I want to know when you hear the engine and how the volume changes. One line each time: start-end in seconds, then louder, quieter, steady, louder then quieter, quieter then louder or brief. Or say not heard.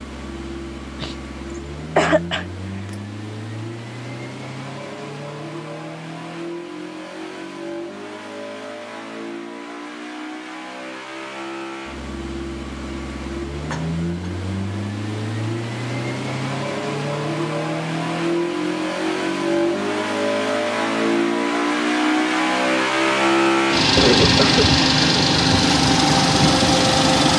0.0-27.3 louder.